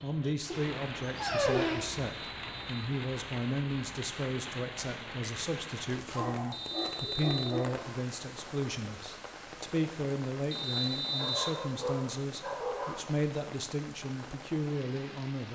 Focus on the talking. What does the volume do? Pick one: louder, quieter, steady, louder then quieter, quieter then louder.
steady.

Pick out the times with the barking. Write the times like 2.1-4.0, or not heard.
0.5-1.9, 6.1-7.8, 11.1-13.1.